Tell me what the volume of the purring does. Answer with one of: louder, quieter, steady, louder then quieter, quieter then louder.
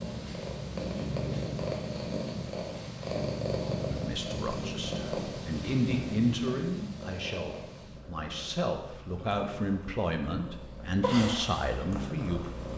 quieter then louder.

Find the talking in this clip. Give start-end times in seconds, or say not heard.
3.9-12.4.